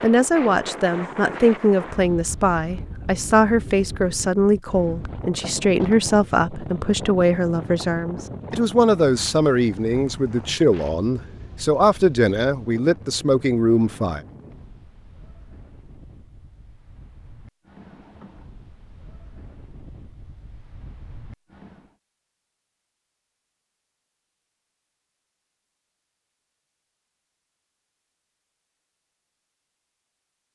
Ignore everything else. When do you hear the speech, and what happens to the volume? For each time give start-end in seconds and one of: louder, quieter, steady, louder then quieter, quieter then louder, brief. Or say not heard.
0.0-14.2 steady.